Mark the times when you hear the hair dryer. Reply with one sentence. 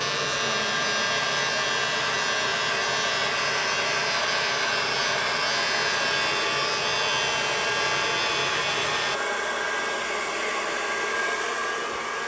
You can hear the hair dryer from 0.0 to 12.2 s.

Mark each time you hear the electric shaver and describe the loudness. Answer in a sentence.
The electric shaver can be heard from 0.0 to 9.2 s, at a steady volume.